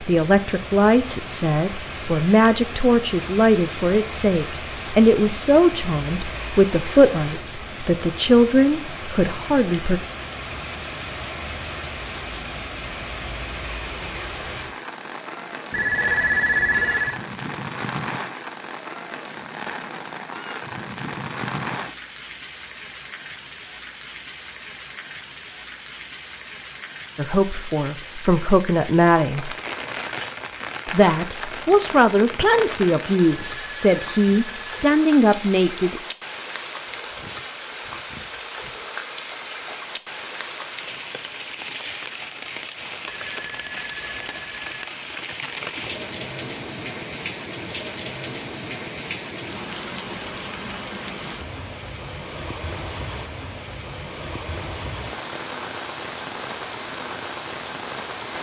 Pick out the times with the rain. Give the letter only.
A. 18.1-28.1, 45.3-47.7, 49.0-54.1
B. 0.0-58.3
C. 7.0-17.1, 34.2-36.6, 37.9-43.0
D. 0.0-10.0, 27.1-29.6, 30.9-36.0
B.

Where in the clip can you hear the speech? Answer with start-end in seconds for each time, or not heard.
0.0-10.0, 27.1-29.6, 30.9-36.0.